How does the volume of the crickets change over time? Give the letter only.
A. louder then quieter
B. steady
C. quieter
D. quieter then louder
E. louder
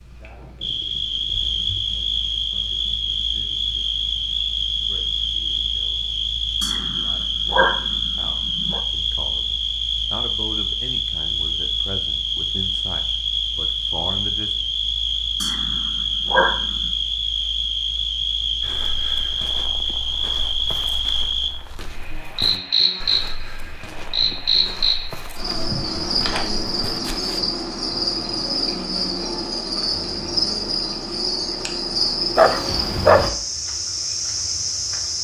B.